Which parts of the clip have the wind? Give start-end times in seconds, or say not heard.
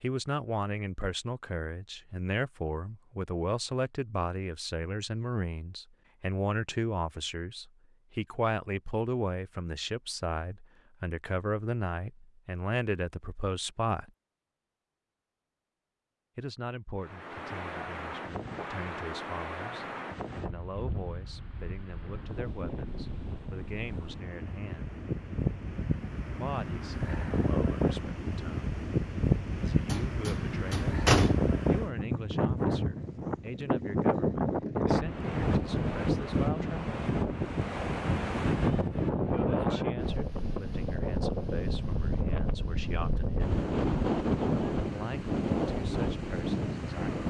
17.0-47.2.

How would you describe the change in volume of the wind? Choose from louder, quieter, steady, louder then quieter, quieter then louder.
louder.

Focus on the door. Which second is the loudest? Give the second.
31 s.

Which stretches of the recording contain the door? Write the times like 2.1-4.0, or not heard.
29.9-31.5.